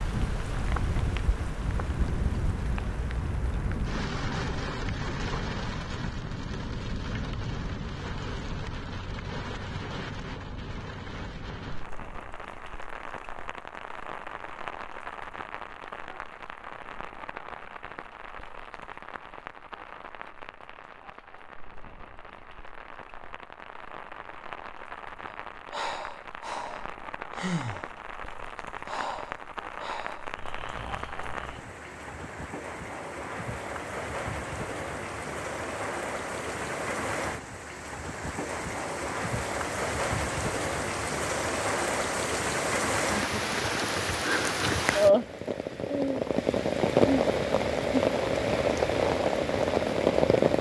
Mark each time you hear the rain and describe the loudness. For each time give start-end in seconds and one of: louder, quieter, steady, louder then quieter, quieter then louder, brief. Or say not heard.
0.0-50.5 quieter then louder.